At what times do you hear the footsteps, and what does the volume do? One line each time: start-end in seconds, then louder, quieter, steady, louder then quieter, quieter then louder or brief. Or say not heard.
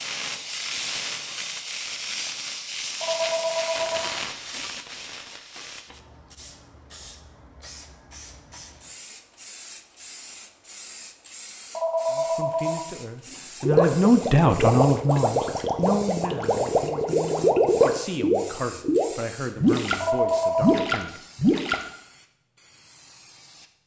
not heard.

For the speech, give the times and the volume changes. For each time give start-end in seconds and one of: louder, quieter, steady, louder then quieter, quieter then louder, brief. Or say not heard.
12.1-21.2 quieter.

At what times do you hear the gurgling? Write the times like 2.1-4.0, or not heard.
13.6-21.9.